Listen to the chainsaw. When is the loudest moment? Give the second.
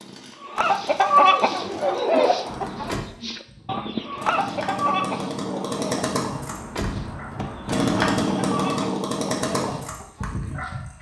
8 s.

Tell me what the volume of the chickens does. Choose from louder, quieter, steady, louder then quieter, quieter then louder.
quieter.